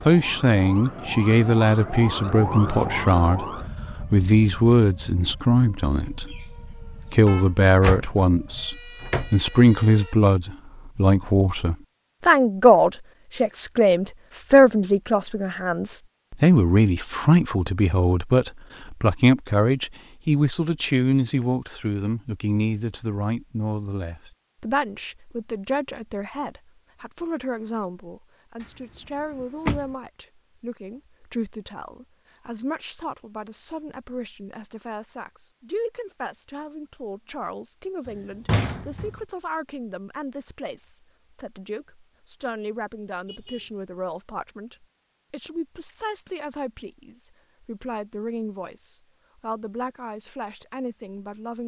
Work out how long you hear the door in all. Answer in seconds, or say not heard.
3 s.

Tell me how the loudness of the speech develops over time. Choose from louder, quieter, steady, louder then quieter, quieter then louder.
quieter.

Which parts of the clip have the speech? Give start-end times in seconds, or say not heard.
0.0-51.6.